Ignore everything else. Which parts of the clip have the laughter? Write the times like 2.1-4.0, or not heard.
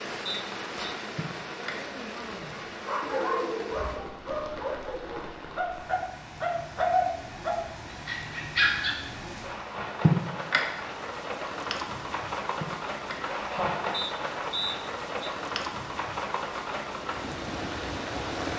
1.1-1.9, 10.0-10.7, 12.6-13.8.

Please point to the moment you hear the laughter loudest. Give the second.
10 s.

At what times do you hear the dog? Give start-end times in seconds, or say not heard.
2.8-8.9.